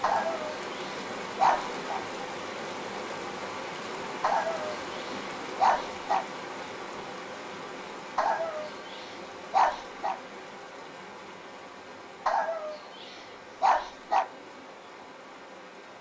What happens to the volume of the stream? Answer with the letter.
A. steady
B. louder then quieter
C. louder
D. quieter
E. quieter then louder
D.